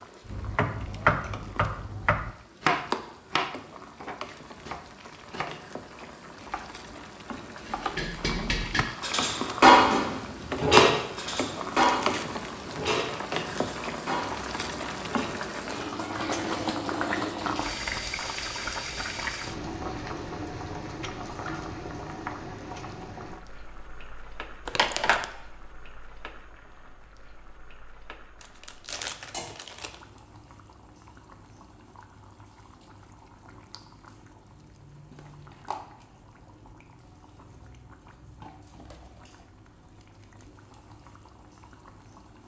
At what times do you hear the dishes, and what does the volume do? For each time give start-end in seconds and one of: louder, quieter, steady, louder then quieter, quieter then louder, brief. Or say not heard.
8.0-15.3 louder then quieter.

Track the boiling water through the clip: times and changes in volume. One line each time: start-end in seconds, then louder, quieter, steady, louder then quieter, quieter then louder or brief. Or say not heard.
0.0-42.4 louder then quieter.